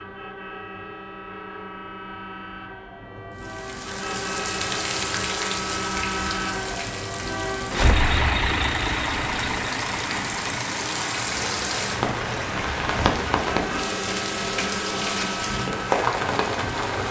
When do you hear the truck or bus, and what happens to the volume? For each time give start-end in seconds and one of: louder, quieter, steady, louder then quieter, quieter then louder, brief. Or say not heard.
0.0-17.0 louder then quieter.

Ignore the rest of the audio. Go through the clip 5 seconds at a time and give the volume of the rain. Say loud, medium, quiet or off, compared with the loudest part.
medium, medium, loud, loud.